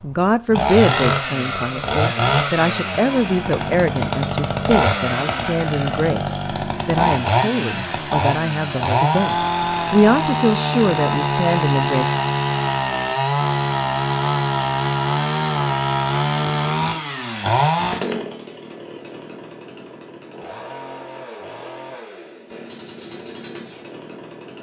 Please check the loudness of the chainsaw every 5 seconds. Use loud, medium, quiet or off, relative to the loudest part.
loud, loud, loud, loud, quiet.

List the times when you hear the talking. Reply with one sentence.
You can hear the talking from 0.0 to 12.1 s.